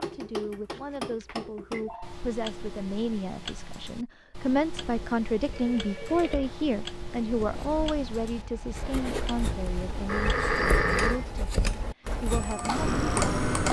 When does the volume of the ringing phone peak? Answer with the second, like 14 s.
11 s.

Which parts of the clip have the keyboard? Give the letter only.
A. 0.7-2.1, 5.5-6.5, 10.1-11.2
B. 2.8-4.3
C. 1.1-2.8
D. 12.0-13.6
D.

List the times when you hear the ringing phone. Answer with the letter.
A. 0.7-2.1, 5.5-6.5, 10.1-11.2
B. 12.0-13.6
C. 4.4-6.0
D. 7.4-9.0
A.